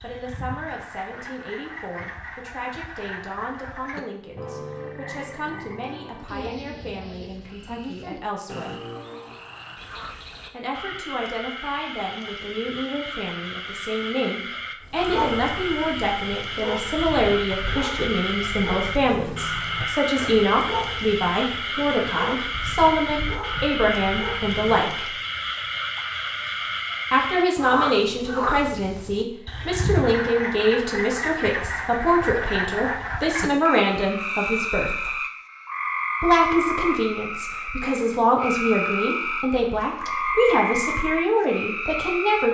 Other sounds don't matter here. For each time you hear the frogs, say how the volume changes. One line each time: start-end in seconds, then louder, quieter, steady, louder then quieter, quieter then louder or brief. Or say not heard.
0.0-42.4 louder.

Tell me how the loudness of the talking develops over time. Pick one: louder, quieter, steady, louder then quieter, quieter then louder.
louder.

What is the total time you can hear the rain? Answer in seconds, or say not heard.
not heard.